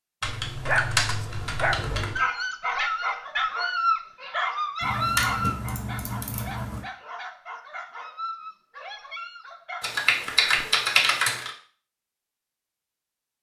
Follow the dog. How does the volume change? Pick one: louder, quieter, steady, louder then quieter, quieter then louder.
quieter.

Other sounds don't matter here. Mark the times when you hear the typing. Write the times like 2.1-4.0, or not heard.
0.2-2.2, 4.8-6.8, 9.8-11.5.